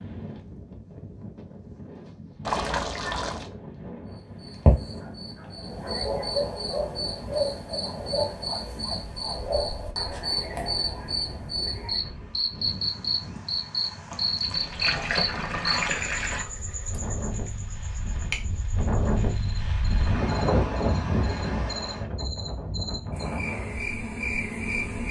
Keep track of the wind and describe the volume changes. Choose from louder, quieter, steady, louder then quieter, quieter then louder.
louder.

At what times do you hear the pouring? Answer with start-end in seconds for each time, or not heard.
2.5-3.5, 14.1-16.4.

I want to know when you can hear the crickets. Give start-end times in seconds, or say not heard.
4.4-25.0.